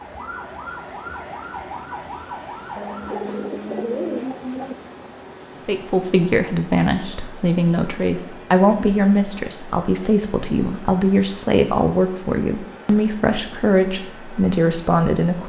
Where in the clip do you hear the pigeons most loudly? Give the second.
4 s.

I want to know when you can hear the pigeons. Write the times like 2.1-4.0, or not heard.
2.8-4.8.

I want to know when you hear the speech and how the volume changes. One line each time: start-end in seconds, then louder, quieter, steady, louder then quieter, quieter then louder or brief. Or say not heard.
5.7-15.4 steady.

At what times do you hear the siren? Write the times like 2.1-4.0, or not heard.
0.0-3.5.